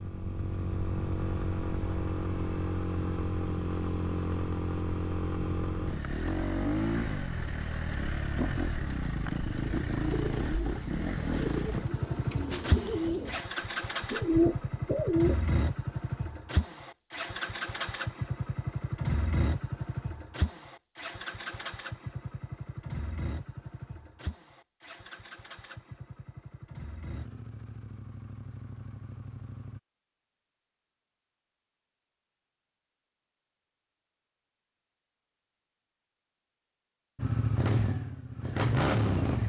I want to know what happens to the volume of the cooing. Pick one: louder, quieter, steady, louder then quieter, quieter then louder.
louder.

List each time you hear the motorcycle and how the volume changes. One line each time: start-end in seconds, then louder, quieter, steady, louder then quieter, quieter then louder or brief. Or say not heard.
0.0-29.8 quieter
37.1-39.4 brief.